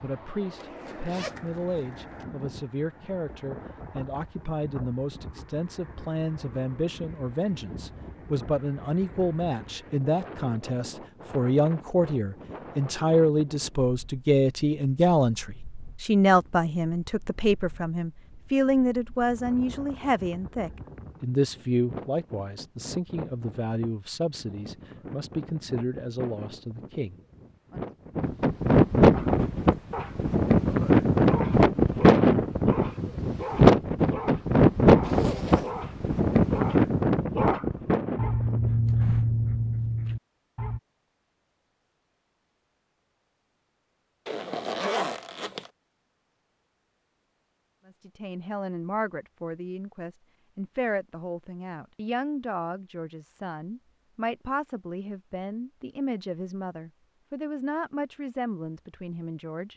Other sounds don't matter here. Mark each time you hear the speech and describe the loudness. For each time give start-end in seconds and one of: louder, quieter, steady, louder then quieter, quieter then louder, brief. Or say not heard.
0.0-27.9 louder then quieter
47.9-59.7 steady.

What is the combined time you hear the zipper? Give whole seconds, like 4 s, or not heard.
4 s.